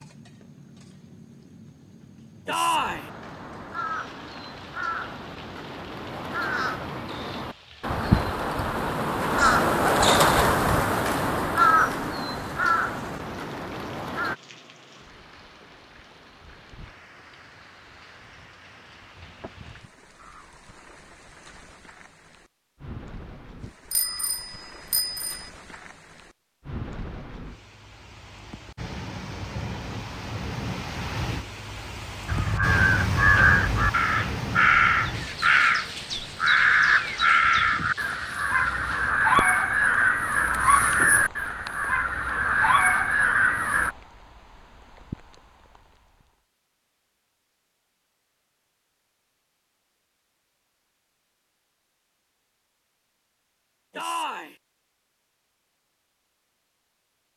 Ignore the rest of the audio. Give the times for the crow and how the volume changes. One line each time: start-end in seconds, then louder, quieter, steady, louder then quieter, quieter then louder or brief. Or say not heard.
2.7-14.3 louder then quieter
32.2-43.9 steady.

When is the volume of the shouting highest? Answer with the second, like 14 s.
3 s.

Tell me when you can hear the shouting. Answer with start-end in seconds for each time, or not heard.
2.5-3.1, 54.0-54.5.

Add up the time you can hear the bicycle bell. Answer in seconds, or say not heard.
2 s.